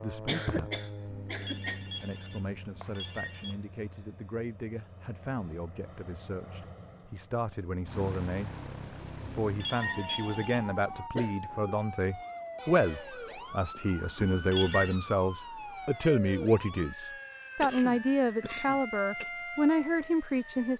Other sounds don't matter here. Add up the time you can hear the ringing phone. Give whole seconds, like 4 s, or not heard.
5 s.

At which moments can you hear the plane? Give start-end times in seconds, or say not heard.
0.0-9.8.